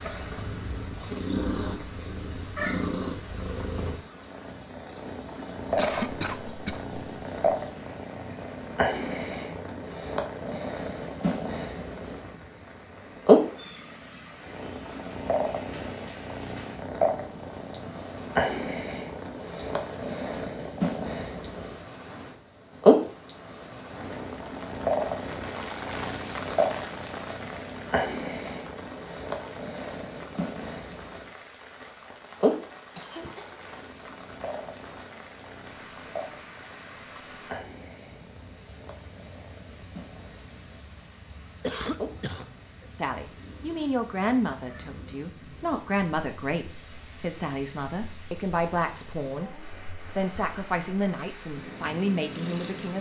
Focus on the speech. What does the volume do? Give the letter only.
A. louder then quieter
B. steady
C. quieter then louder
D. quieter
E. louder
B.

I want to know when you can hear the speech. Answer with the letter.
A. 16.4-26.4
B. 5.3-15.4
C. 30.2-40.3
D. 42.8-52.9
D.